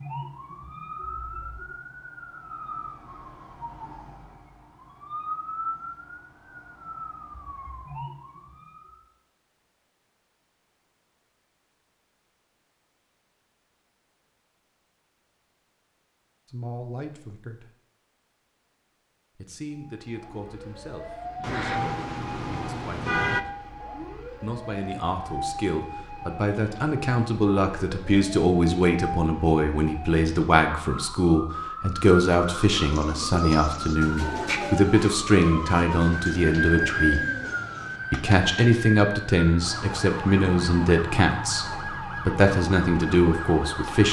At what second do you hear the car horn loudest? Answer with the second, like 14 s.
23 s.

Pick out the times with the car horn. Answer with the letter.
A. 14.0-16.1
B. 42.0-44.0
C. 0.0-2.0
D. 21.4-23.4
D.